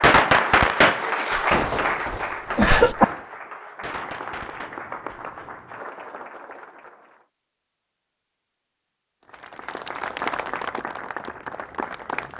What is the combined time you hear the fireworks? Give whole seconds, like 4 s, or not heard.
5 s.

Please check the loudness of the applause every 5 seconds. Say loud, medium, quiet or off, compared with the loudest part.
loud, medium, loud.